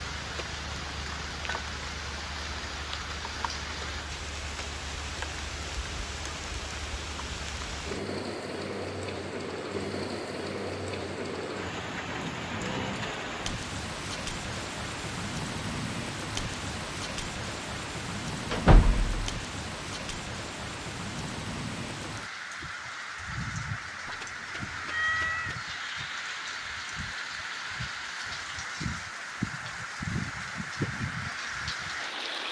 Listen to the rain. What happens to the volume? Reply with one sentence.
The volume of the rain stays about the same.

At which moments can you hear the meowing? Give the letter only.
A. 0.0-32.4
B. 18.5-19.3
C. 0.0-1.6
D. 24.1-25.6
D.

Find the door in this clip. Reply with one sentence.
You can hear the door from 18.5 to 19.3 s.